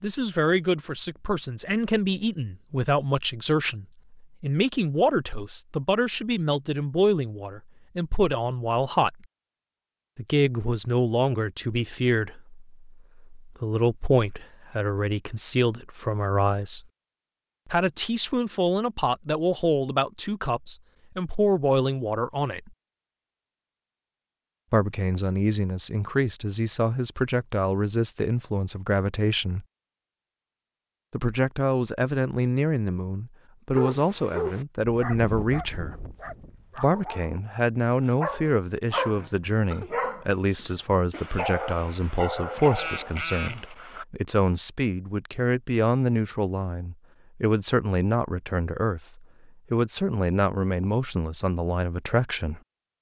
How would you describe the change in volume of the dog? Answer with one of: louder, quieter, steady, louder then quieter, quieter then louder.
quieter then louder.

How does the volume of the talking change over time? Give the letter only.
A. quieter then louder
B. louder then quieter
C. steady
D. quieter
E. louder
C.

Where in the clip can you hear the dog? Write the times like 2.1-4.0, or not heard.
33.8-44.0.